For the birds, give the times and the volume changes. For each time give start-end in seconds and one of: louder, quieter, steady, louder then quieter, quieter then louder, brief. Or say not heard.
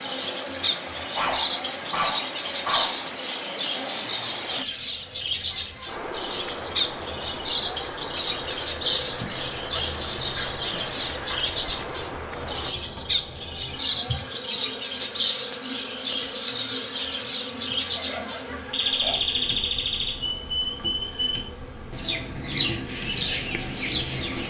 0.0-24.4 steady.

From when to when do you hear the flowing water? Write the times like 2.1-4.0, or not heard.
0.0-12.8.